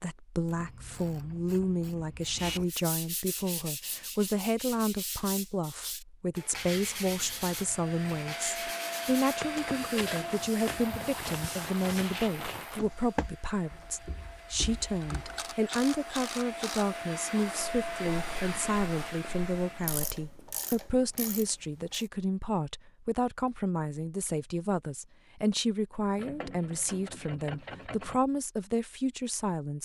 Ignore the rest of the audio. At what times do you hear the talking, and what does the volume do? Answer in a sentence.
You can hear the talking from 0.0 to 29.8 s, at a steady volume.